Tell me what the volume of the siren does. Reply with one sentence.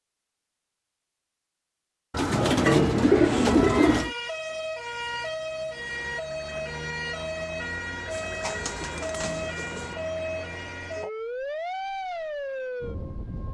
The loudness of the siren stays about the same.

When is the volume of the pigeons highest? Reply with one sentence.
The volume of the pigeons peaks at 3 seconds.